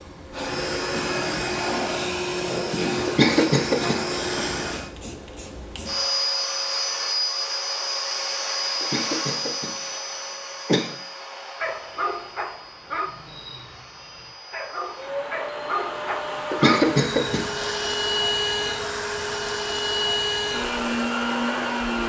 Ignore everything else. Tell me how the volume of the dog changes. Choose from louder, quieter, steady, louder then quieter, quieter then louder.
quieter then louder.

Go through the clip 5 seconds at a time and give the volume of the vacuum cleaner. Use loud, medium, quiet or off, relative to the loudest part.
loud, loud, quiet, loud, loud.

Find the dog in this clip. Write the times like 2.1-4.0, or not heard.
11.6-17.5.